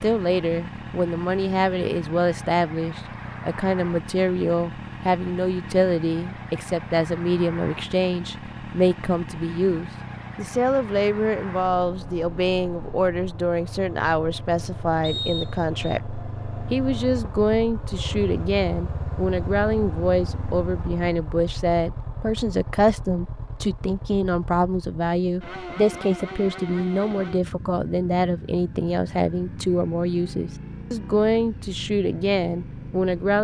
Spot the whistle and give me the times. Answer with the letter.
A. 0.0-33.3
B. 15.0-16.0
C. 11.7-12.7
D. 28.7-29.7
B.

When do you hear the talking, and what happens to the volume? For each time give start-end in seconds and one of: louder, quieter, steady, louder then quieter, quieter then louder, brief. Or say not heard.
0.0-33.3 steady.